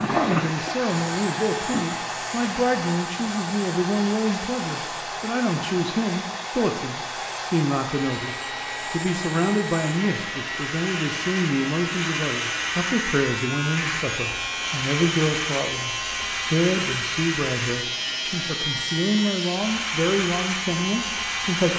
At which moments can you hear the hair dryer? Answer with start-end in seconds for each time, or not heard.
0.0-21.7.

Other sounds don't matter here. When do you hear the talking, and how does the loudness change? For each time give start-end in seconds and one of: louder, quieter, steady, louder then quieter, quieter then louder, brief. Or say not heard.
0.1-21.7 steady.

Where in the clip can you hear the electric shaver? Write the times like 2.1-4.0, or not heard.
0.0-21.7.